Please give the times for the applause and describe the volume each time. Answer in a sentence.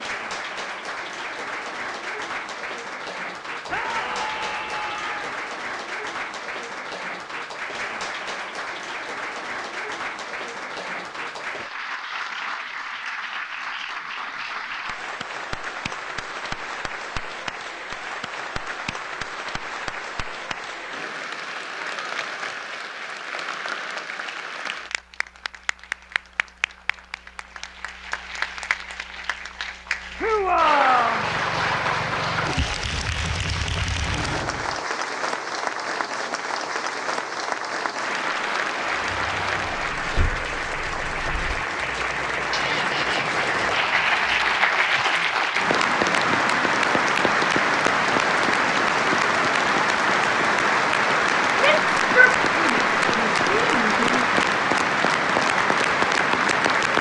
The applause can be heard from 0.0 to 56.9 s, getting louder.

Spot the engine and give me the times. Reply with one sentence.
You can hear the engine from 30.8 to 34.8 s and from 39.0 to 44.8 s.